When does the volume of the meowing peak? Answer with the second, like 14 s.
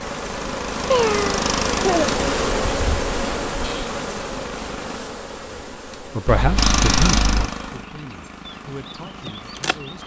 1 s.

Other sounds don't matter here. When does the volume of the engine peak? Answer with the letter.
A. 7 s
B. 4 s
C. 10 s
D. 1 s
A.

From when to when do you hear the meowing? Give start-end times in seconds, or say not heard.
0.9-2.1, 6.2-7.5.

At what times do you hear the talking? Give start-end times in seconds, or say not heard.
5.5-10.0.